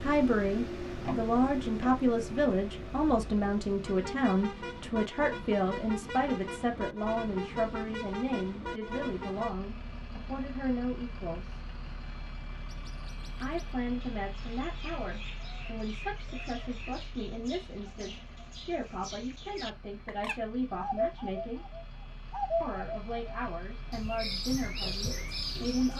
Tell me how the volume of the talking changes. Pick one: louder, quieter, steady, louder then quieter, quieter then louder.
quieter.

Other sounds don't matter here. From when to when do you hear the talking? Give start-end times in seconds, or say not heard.
0.0-11.7, 13.4-21.6, 22.6-25.9.